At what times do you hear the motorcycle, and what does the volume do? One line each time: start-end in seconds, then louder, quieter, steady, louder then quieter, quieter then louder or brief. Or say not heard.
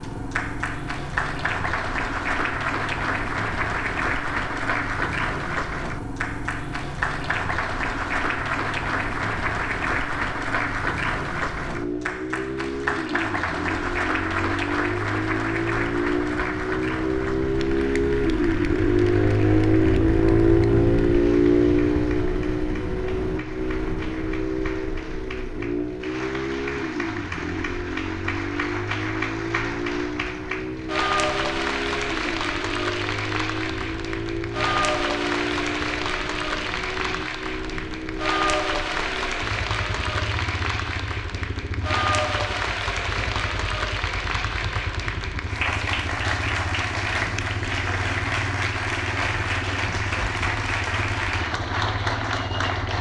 0.0-52.9 louder then quieter.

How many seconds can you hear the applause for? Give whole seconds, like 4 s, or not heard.
53 s.